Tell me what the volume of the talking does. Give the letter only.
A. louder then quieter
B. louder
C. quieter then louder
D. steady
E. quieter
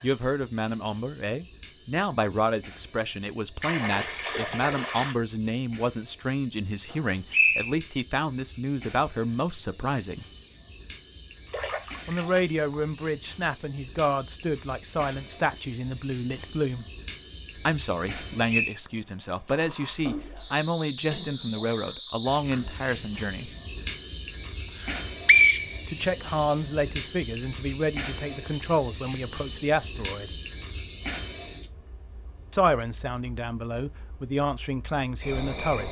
D.